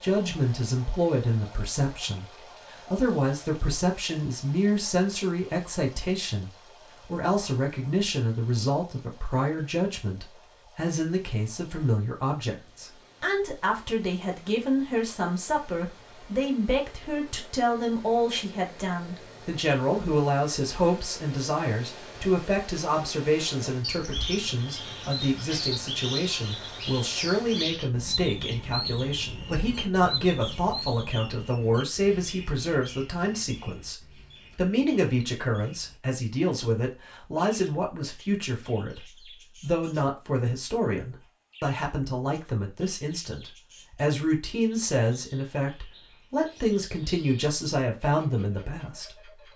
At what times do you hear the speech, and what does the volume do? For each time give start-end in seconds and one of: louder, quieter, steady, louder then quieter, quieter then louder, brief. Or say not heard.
0.0-49.3 steady.